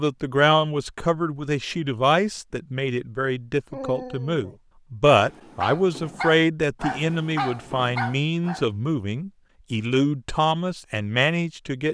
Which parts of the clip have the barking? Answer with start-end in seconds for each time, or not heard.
3.7-8.7.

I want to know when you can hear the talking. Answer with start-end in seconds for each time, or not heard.
0.0-11.9.